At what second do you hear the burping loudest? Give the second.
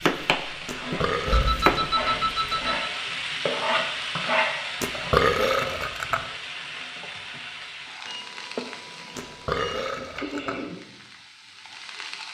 5 s.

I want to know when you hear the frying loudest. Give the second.
4 s.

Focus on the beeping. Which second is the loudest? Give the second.
2 s.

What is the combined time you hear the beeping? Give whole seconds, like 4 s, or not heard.
3 s.